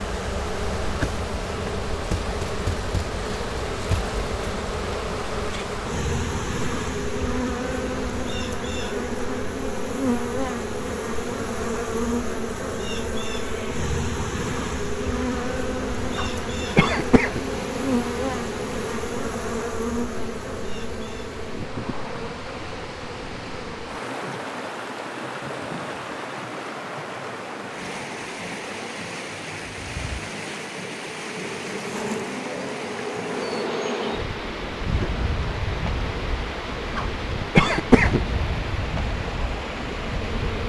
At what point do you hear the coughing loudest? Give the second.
38 s.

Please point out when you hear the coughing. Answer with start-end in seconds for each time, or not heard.
16.1-17.4, 37.0-38.2.